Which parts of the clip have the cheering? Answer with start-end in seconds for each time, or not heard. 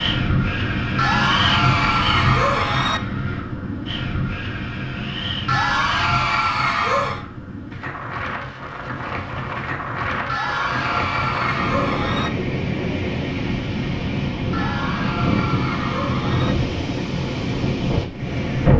0.9-3.0, 5.5-7.2, 10.2-12.3, 14.5-16.6.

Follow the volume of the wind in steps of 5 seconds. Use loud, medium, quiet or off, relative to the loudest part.
loud, medium, loud, loud.